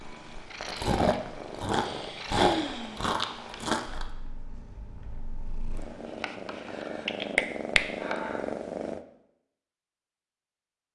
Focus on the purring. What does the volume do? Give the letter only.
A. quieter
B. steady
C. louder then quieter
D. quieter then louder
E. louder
D.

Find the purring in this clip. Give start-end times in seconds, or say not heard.
0.0-9.1.